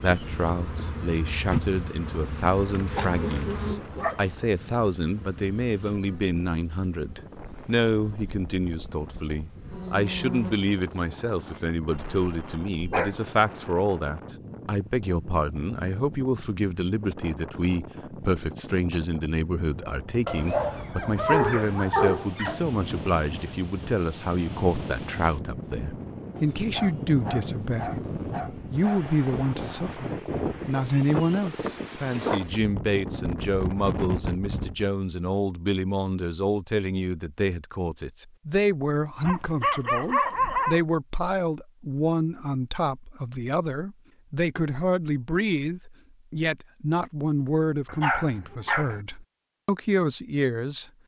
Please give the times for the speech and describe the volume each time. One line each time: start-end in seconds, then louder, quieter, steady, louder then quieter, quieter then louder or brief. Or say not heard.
0.0-50.9 steady.